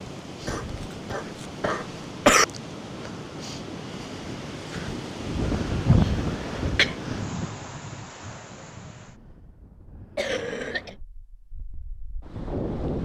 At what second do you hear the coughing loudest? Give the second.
2 s.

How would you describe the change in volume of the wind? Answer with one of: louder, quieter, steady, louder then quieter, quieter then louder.
louder then quieter.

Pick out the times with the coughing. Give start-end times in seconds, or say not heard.
0.5-2.5, 6.0-7.0, 10.2-10.9.